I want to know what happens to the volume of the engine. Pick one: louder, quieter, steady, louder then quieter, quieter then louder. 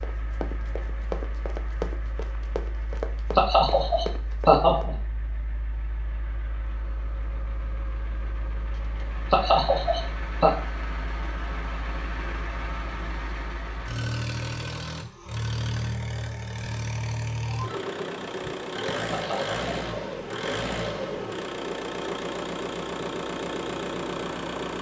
louder.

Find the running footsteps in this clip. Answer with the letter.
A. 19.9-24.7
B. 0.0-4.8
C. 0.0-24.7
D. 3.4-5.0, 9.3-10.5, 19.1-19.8
B.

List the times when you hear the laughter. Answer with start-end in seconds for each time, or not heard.
3.4-5.0, 9.3-10.5, 19.1-19.8.